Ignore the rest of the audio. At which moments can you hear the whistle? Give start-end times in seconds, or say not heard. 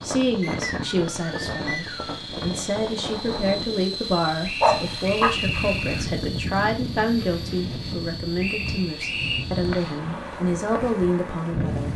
0.4-2.2, 4.4-6.1, 8.4-9.4.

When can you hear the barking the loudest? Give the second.
5 s.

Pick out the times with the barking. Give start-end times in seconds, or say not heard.
4.6-6.0.